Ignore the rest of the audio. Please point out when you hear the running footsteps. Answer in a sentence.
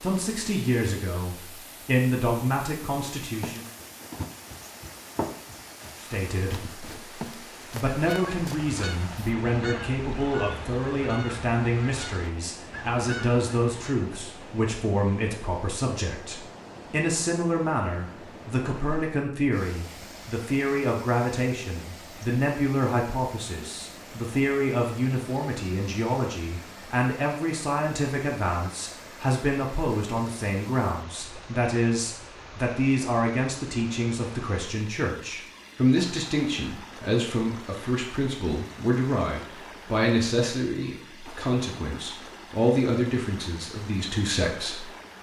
You can hear the running footsteps from 3.2 to 8.7 s.